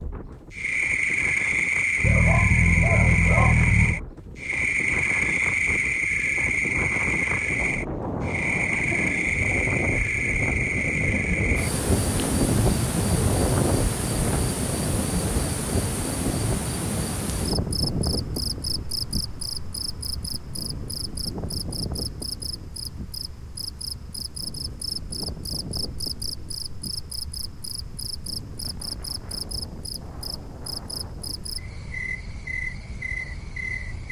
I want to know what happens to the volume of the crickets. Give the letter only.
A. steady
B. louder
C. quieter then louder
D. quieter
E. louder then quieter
D.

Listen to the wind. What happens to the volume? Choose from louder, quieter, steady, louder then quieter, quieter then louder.
louder then quieter.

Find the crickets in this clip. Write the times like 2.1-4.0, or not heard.
0.0-34.0.